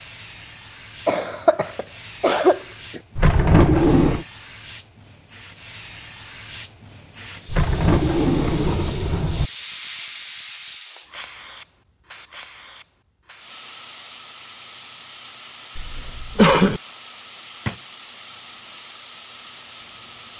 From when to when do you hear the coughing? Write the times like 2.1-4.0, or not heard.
1.1-3.0, 15.8-16.8.